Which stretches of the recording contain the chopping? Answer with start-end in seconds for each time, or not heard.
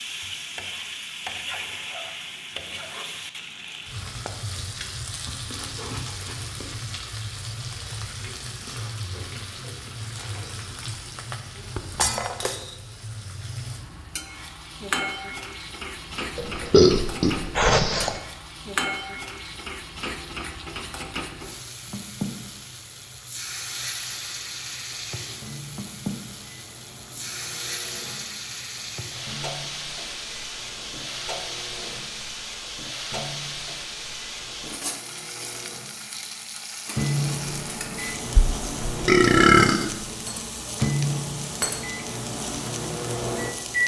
not heard.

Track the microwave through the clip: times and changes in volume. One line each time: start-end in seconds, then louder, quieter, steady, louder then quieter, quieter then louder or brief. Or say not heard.
25.2-43.8 louder.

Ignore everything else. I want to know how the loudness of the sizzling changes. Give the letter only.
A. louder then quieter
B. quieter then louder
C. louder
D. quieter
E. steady
E.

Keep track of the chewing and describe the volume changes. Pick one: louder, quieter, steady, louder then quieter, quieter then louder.
quieter.